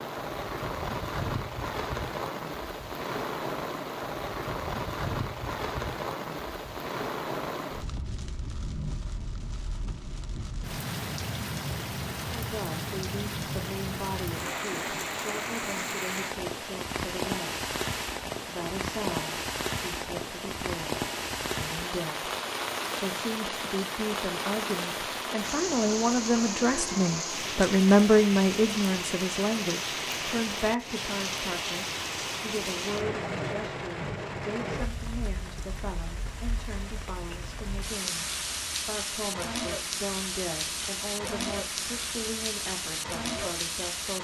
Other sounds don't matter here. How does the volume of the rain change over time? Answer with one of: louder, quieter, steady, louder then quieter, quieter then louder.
steady.